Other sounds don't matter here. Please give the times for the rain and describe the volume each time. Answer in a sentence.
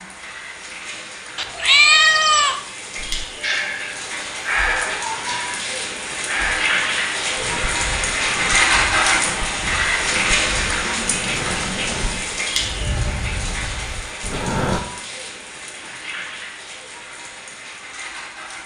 You can hear the rain from 0.0 to 18.6 s, getting louder then quieter.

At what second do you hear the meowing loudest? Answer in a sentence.
The loudest moment of the meowing is at 2 seconds.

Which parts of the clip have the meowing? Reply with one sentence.
You can hear the meowing from 1.4 to 2.5 s and from 10.4 to 11.3 s.